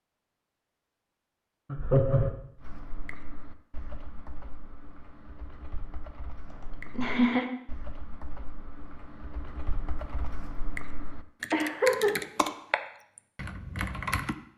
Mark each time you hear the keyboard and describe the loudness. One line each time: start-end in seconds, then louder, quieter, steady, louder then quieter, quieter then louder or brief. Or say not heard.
2.5-14.3 louder.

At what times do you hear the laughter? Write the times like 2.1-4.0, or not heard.
1.7-2.3, 6.5-7.5, 11.5-12.2.